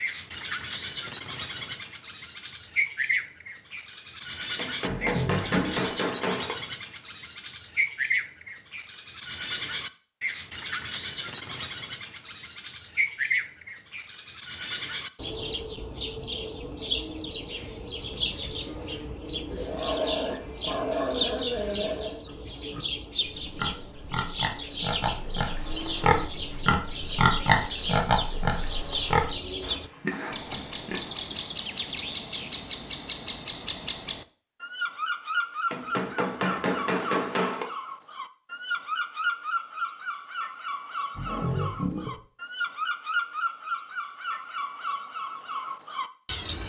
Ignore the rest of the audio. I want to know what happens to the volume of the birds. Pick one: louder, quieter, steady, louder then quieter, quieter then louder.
steady.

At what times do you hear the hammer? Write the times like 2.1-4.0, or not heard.
4.5-6.5, 35.7-37.6.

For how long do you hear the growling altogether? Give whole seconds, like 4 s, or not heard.
5 s.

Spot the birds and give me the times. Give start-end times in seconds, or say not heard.
0.0-46.6.